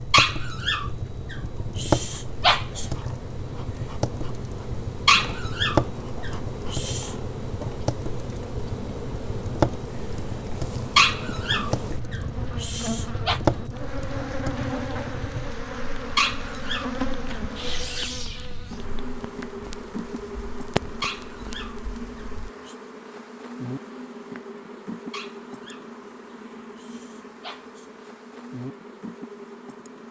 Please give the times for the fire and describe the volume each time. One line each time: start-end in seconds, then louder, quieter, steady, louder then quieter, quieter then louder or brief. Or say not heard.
0.0-22.5 quieter.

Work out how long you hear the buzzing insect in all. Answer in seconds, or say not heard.
30 s.